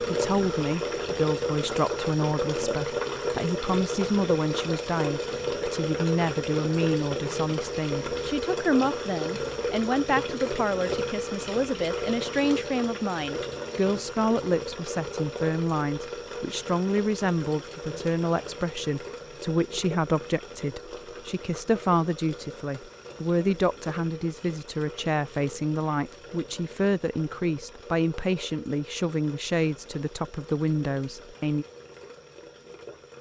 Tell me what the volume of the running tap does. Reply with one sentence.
The loudness of the running tap goes down.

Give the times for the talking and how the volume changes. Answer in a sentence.
The talking can be heard from 0.0 to 31.6 s, at a steady volume.